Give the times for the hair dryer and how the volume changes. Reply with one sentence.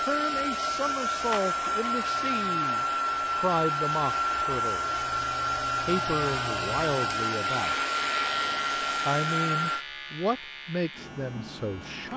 You can hear the hair dryer from 0.0 to 9.8 s, at a steady volume.